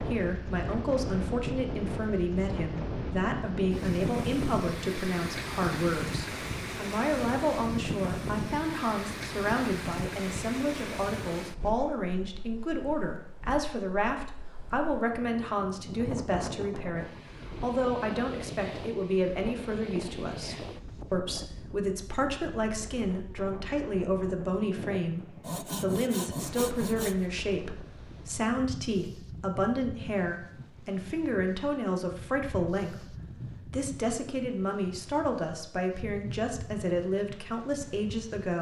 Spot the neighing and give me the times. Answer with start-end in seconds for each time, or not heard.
not heard.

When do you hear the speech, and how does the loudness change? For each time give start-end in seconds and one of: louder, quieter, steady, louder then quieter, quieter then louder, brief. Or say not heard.
0.1-38.5 steady.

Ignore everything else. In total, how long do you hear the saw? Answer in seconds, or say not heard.
2 s.